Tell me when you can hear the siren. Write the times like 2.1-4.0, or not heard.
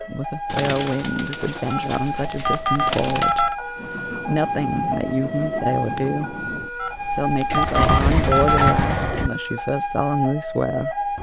0.0-11.1.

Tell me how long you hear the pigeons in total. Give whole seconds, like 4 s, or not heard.
5 s.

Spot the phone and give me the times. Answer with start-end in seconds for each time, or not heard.
1.7-3.5, 6.8-8.8.